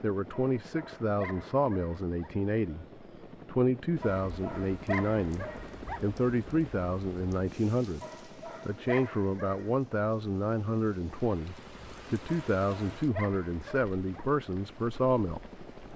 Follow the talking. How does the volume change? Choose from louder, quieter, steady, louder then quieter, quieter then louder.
steady.